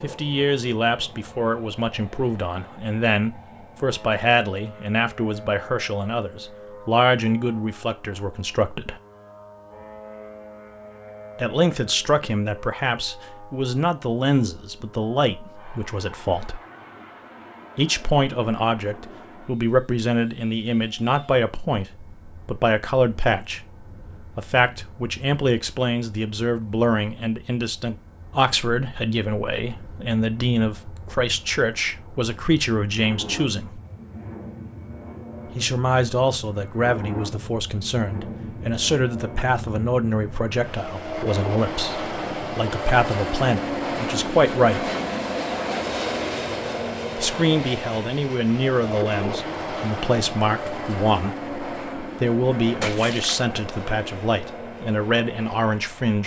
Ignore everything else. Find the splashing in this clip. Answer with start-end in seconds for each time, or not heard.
52.8-53.4.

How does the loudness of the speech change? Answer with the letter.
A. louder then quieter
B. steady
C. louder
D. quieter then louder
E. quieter
B.